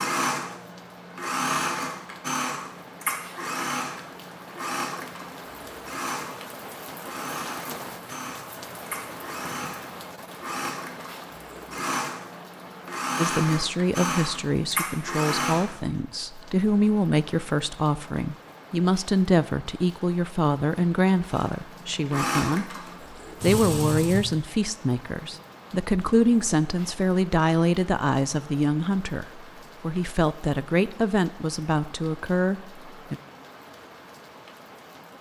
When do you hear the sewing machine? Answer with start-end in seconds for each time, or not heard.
0.0-15.8, 21.3-24.4.